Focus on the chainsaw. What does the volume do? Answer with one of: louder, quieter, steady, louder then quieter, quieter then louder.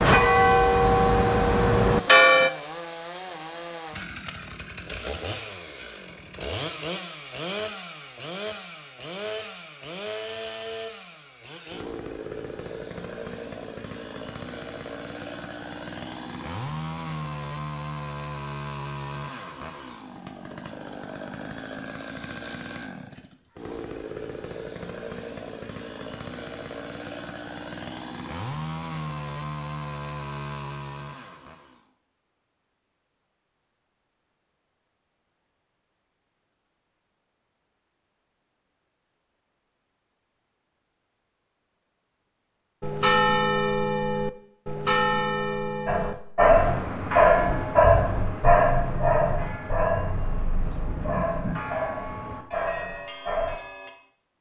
steady.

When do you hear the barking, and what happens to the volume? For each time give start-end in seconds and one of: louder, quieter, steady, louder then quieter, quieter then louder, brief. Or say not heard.
45.9-53.6 quieter.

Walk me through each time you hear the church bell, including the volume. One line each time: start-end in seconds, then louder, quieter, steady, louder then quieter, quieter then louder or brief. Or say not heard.
0.0-2.5 brief
42.8-53.9 quieter.